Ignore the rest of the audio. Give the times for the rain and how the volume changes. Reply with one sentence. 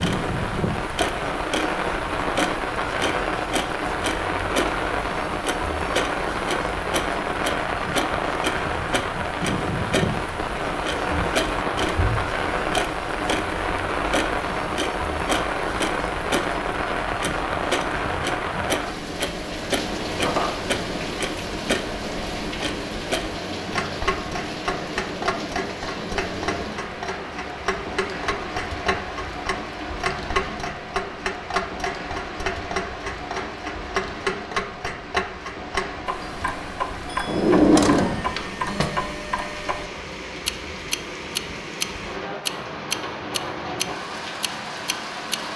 The rain can be heard from 0.0 to 45.5 s, getting quieter.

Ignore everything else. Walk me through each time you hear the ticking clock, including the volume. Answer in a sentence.
You can hear the ticking clock from 0.0 to 45.4 s, at a steady volume.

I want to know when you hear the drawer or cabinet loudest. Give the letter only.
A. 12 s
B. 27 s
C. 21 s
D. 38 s
D.